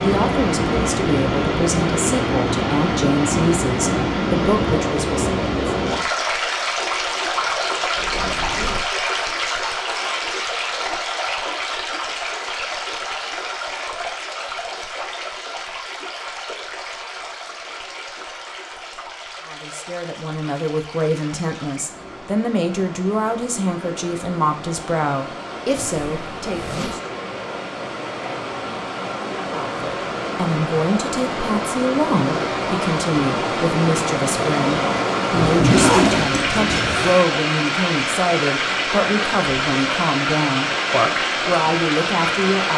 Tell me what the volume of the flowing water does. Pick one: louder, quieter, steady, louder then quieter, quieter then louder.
quieter then louder.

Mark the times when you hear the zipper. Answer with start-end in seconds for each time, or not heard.
8.0-8.9, 25.8-27.0, 35.3-37.1.